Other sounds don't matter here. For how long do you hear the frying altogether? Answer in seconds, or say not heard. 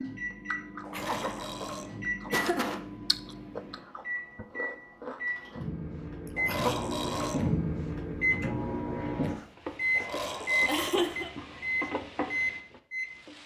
4 s.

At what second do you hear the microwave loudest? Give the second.
8 s.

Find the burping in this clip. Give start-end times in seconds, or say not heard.
0.8-2.0, 6.3-7.5, 9.9-11.1.